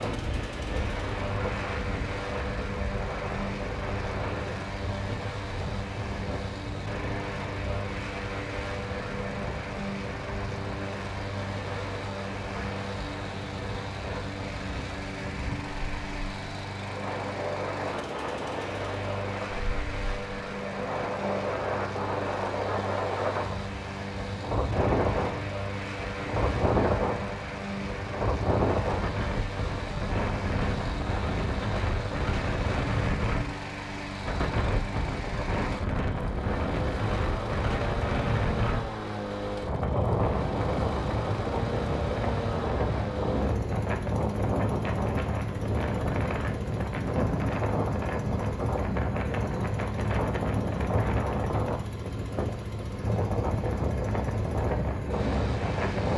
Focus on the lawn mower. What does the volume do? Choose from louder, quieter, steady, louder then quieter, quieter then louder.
steady.